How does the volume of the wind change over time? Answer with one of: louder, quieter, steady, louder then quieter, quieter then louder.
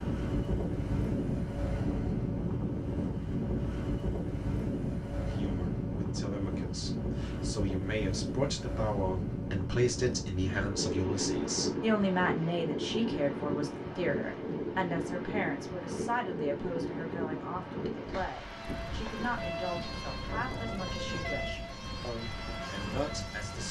quieter.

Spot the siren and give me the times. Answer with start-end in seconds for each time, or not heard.
18.4-23.6.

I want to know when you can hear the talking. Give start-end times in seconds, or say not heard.
5.2-23.6.